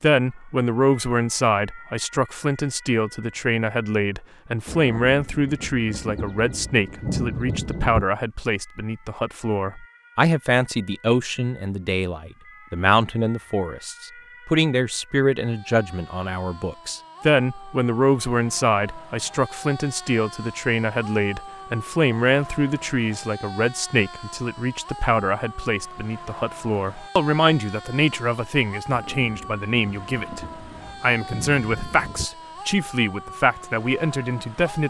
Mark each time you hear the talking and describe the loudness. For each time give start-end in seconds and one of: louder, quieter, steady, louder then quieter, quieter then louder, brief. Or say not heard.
0.0-34.8 steady.